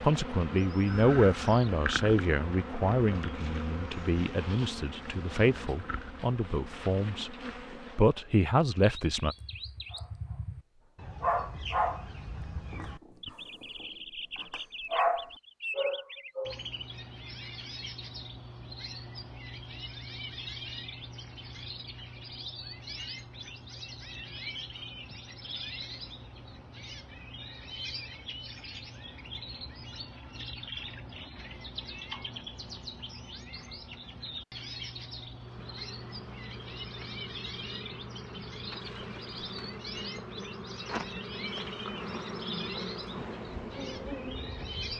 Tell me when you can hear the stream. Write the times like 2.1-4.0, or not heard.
not heard.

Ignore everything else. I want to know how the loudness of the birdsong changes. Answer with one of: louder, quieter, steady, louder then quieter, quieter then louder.
steady.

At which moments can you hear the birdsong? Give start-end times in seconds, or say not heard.
8.8-44.9.